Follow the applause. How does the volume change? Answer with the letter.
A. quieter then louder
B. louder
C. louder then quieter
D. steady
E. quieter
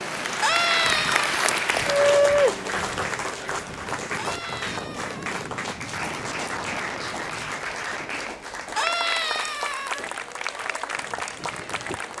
E.